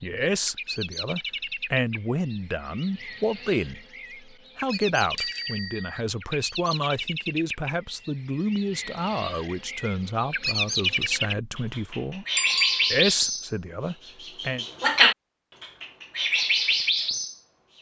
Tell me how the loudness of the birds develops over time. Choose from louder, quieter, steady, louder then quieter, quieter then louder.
louder.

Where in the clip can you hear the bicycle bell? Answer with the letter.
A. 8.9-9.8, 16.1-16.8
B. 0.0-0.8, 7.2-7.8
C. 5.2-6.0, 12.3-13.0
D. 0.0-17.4
C.